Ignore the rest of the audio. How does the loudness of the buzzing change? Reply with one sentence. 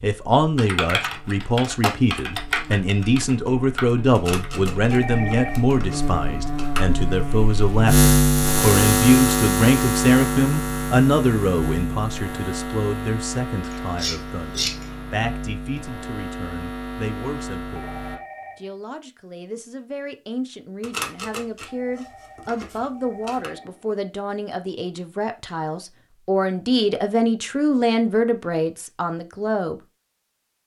The volume of the buzzing goes up, then down.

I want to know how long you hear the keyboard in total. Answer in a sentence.
The keyboard can be heard for 5 seconds in total.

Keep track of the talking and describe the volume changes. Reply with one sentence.
The volume of the talking goes down, then up.